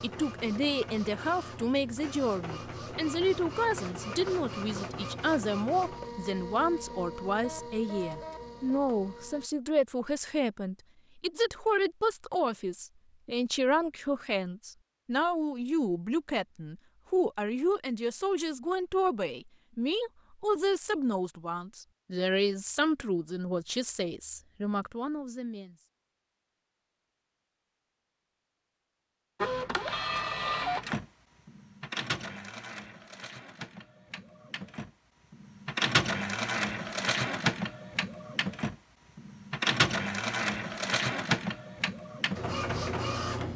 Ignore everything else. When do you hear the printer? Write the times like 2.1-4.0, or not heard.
0.0-9.5, 29.4-43.5.